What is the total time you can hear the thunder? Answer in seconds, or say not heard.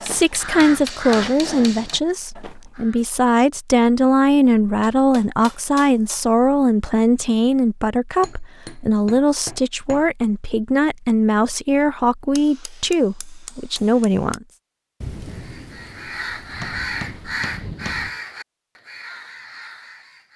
3 s.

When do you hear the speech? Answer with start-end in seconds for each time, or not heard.
0.0-14.4.